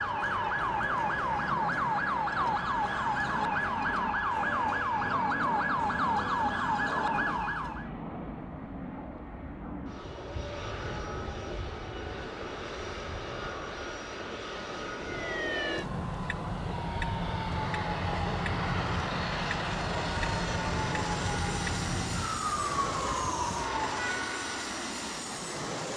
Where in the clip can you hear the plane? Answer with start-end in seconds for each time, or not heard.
0.0-25.9.